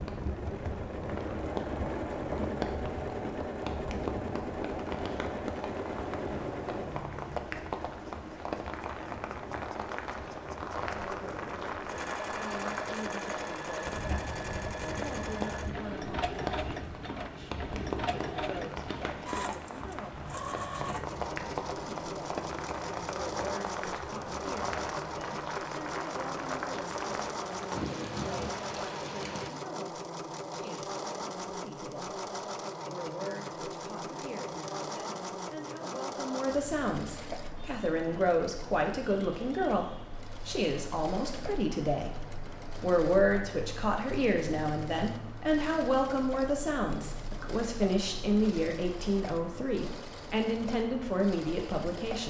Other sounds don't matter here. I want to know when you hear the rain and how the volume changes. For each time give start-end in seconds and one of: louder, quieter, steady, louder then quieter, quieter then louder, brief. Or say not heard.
0.0-29.5 steady.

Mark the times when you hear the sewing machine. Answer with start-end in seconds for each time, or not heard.
0.0-52.2.